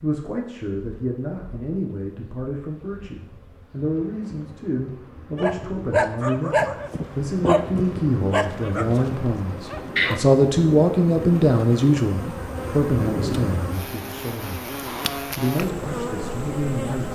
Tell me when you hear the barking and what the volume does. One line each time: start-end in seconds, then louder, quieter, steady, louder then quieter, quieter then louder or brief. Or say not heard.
5.3-10.2 quieter.